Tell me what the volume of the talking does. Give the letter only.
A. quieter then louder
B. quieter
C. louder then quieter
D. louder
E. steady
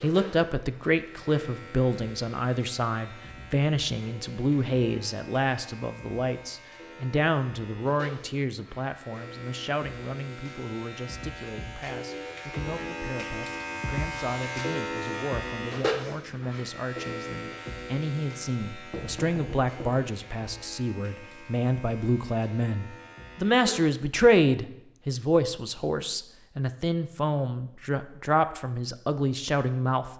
A.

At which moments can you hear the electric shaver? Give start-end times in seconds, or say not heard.
0.0-23.9.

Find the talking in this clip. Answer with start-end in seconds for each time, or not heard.
0.0-30.1.